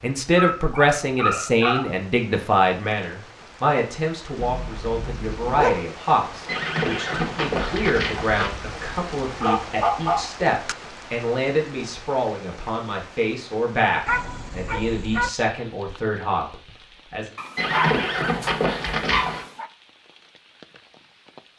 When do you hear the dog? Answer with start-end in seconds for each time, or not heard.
0.3-1.9, 4.4-5.9, 9.2-10.8, 14.1-15.3, 17.4-19.7.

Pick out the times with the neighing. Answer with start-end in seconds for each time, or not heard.
6.5-8.5, 17.6-19.4.